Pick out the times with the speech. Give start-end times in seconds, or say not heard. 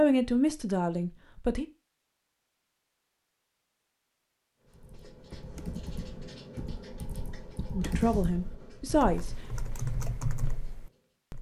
0.0-1.6, 7.7-9.4.